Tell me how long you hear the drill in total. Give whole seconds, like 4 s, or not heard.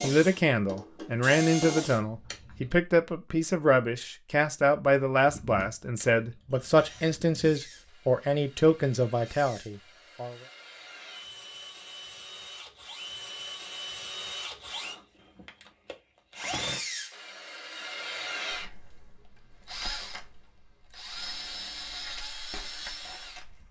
21 s.